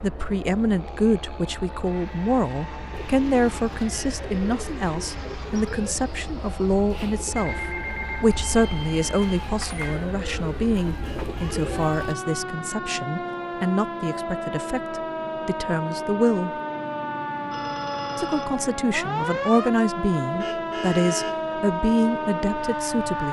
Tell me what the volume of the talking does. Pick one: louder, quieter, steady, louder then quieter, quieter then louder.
steady.